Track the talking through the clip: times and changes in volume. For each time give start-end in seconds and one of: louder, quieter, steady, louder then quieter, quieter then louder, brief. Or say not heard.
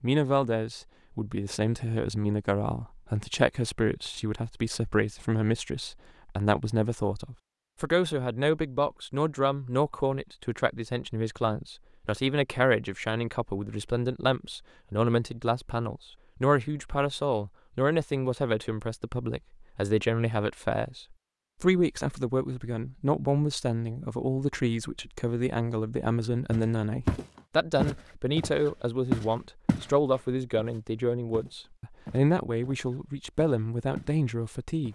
0.0-34.8 steady.